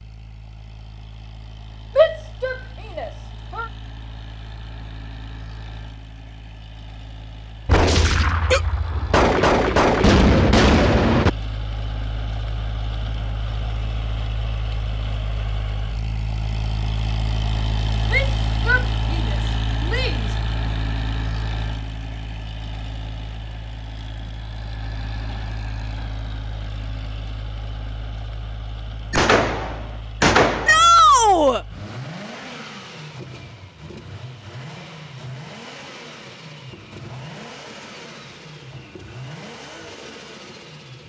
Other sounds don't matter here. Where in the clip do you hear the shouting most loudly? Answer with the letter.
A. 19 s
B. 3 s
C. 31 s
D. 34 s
C.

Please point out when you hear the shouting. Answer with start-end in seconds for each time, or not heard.
1.9-3.6, 18.1-20.3, 30.6-31.6.